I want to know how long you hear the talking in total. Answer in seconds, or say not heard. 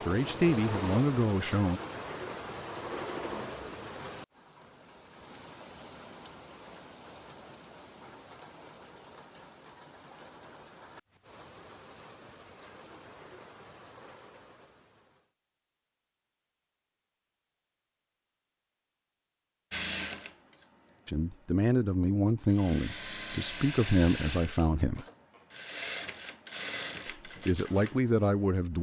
7 s.